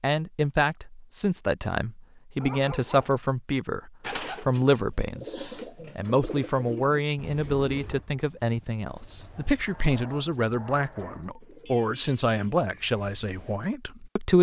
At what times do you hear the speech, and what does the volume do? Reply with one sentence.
The speech can be heard from 0.0 to 14.3 s, at a steady volume.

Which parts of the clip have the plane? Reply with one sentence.
You can't hear the plane here.